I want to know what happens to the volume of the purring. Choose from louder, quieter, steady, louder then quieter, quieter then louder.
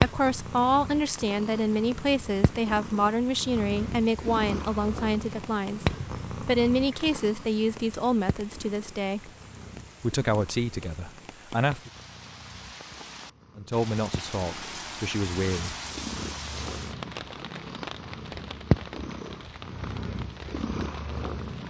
quieter then louder.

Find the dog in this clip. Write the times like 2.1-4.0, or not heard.
not heard.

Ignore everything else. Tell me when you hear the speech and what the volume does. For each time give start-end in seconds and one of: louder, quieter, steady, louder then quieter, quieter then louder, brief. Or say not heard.
0.0-9.3 steady
10.0-11.9 brief
13.6-15.8 brief.